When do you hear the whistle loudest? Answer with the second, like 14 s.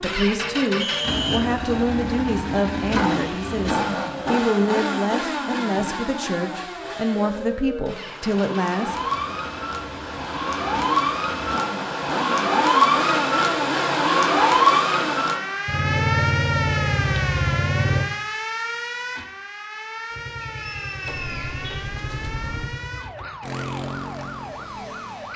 1 s.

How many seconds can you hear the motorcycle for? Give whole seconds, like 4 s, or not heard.
23 s.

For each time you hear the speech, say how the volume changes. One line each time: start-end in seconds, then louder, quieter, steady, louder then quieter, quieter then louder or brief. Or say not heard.
0.0-9.3 steady.